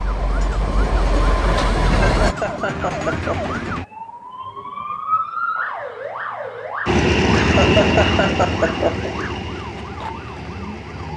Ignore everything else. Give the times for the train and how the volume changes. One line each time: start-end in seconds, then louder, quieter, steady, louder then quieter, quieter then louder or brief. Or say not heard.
0.0-2.4 brief
6.8-11.1 quieter.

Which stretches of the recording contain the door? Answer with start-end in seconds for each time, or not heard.
not heard.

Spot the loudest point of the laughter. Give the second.
8 s.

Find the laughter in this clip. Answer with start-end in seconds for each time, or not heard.
1.9-3.5, 7.3-9.1.